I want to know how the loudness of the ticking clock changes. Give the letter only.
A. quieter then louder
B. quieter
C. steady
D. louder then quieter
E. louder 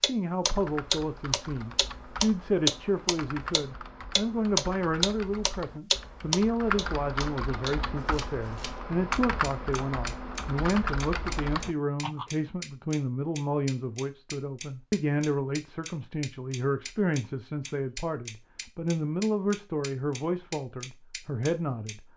B.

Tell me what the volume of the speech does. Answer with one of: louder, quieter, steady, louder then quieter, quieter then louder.
steady.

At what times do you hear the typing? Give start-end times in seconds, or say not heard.
0.5-12.3.